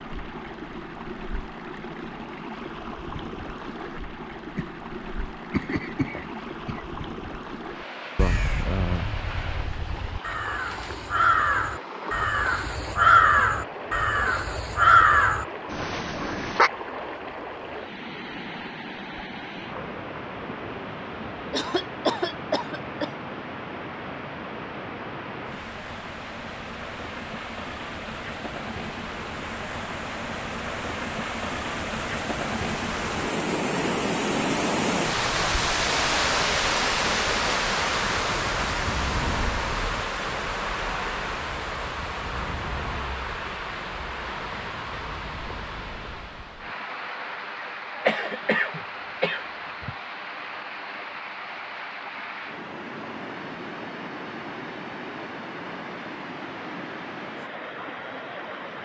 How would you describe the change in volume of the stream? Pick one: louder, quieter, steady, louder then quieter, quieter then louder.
louder then quieter.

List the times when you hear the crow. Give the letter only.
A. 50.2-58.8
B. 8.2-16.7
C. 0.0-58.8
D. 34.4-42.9
B.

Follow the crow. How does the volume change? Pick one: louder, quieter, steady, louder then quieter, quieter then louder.
louder.